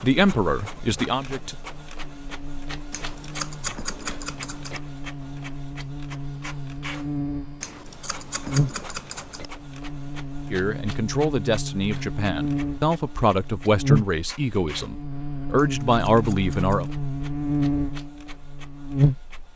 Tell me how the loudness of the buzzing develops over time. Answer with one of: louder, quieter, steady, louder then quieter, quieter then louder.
louder.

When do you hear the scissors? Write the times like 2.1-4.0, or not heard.
2.9-4.8, 7.6-9.4, 15.6-16.9.